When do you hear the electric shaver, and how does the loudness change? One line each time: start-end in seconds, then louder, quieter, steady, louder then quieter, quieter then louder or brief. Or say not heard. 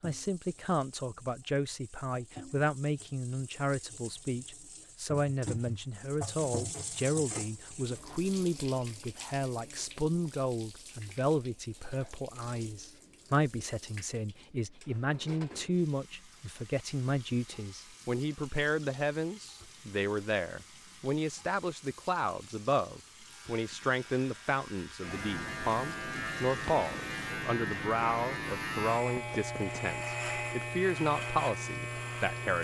23.2-32.6 louder.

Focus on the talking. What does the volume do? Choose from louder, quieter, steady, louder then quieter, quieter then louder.
steady.